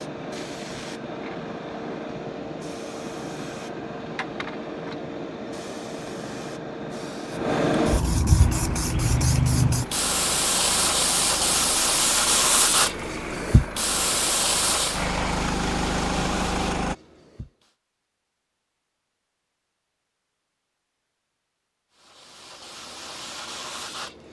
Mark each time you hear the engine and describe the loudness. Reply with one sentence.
The engine can be heard from 8.4 to 16.9 s, getting louder.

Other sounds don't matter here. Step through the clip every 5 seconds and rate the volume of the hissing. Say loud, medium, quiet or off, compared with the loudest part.
medium, loud, loud, quiet, quiet.